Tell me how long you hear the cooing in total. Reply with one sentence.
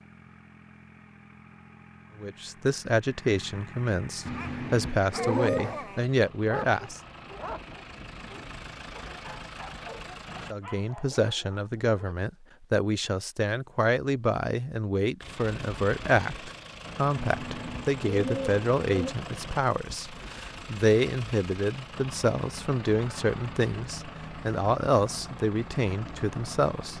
The cooing can be heard for 4 seconds in total.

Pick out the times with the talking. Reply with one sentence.
The talking can be heard from 2.1 to 7.0 s and from 10.5 to 26.9 s.